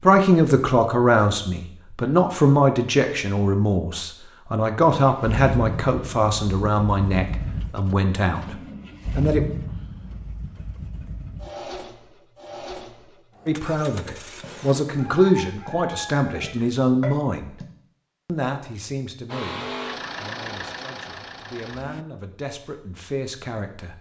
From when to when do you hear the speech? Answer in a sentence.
The speech can be heard from 0.0 to 9.4 s, from 13.4 to 17.6 s and from 18.2 to 23.9 s.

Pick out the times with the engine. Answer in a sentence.
You can hear the engine from 5.0 to 14.8 s and from 19.3 to 22.1 s.